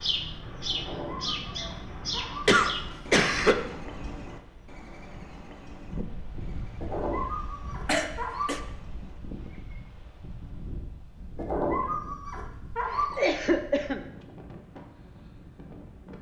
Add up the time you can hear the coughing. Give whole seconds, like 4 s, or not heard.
3 s.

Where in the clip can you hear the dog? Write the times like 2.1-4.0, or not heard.
0.8-2.6, 6.8-8.6, 11.3-13.2.